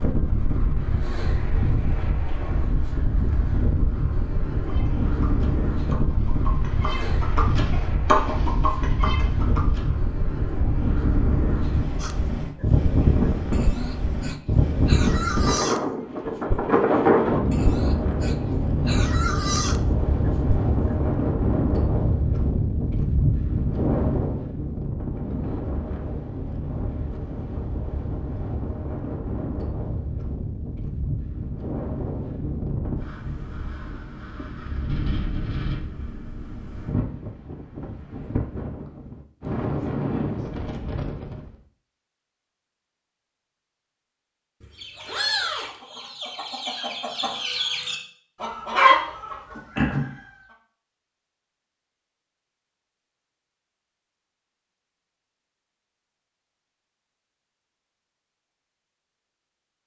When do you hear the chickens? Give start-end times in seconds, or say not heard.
4.5-10.0, 44.8-50.0.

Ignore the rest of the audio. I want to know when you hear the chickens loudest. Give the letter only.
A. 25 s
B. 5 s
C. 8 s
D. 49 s
D.